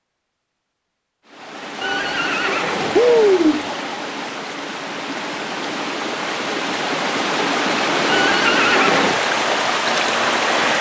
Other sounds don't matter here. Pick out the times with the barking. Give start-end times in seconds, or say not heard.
not heard.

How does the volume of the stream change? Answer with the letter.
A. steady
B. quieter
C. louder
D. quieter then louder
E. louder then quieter
C.